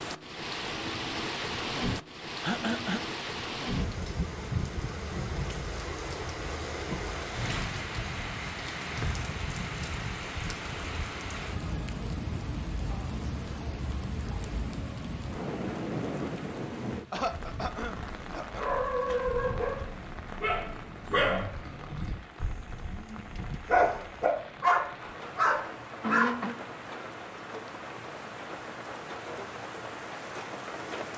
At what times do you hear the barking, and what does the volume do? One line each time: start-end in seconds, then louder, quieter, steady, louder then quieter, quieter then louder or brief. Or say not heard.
18.6-26.4 quieter then louder.